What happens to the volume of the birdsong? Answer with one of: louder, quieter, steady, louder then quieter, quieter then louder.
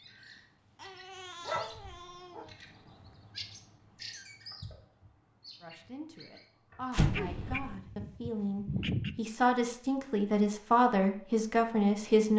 louder then quieter.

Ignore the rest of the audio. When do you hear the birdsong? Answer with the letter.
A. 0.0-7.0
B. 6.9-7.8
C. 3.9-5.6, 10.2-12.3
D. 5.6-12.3
A.